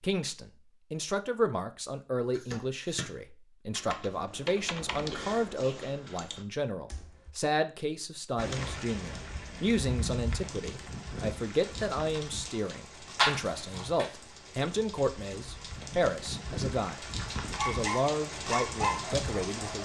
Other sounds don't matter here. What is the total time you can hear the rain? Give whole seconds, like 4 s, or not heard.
11 s.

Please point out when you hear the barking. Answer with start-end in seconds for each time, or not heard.
17.6-19.7.